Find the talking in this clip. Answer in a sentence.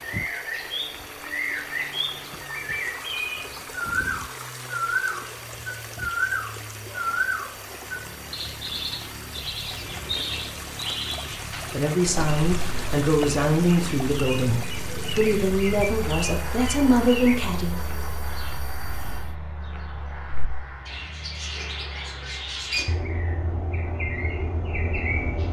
The talking can be heard from 11.7 to 17.8 s.